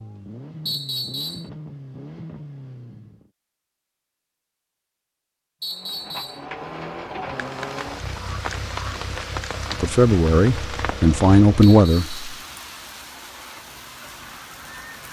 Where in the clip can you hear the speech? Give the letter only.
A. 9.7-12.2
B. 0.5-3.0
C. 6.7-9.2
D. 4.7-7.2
A.